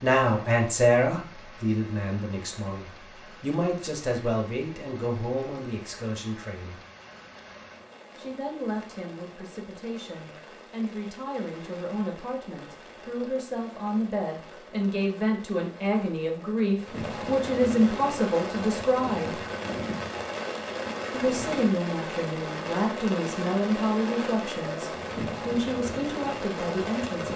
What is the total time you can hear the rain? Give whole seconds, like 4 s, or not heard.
27 s.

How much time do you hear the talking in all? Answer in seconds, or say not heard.
24 s.